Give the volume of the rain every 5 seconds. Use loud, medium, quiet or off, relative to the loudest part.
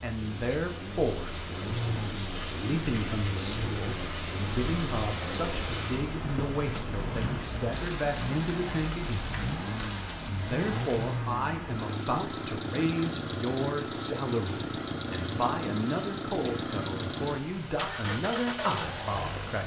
loud, loud, medium, medium.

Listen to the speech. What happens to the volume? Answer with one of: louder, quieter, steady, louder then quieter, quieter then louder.
steady.